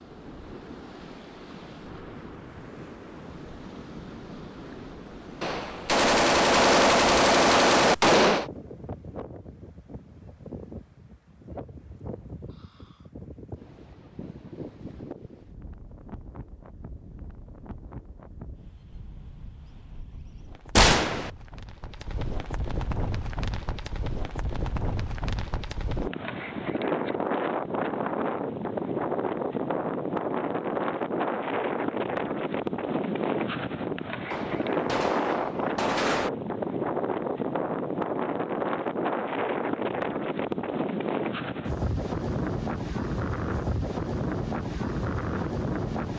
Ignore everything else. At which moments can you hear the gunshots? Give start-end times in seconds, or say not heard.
5.4-8.4, 20.8-21.3, 34.3-36.3.